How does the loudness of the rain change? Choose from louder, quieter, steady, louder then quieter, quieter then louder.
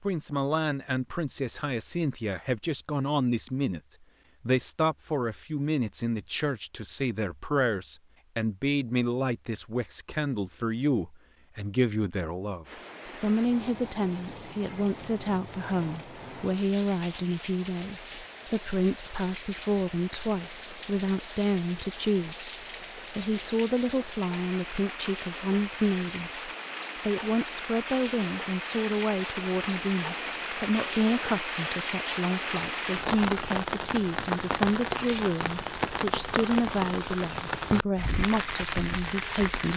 louder.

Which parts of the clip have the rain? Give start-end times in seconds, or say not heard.
12.7-39.7.